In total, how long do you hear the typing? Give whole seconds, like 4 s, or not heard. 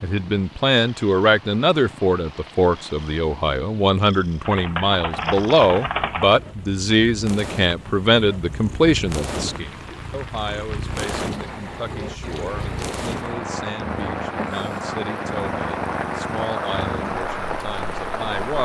2 s.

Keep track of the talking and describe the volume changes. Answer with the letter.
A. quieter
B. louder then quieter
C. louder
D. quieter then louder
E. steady
A.